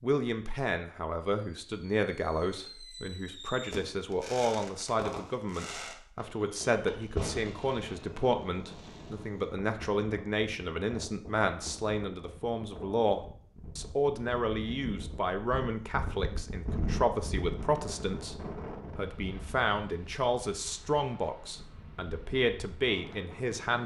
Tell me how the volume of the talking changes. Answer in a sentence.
The loudness of the talking stays about the same.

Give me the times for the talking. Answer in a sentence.
You can hear the talking from 0.0 to 23.8 s.